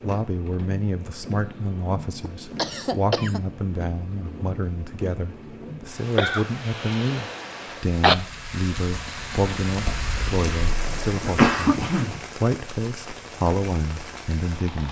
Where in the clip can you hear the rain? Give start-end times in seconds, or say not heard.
0.0-14.8.